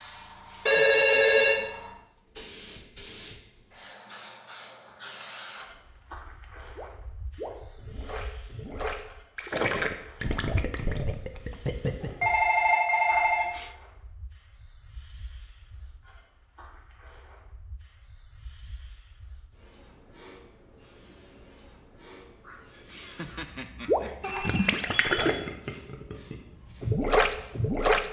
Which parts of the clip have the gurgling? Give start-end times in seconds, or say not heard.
6.8-12.3, 23.9-28.0.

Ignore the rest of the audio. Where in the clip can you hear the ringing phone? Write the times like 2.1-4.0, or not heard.
0.7-1.6, 12.0-13.5, 24.2-25.2.